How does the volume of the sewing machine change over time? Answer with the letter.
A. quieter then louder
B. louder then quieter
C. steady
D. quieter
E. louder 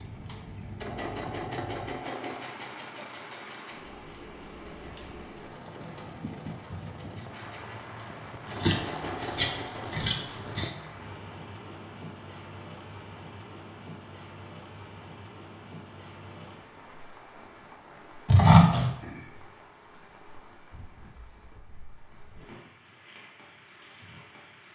A.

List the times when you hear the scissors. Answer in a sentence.
You can hear the scissors from 4.0 to 5.2 s, from 8.4 to 10.7 s and from 18.2 to 18.9 s.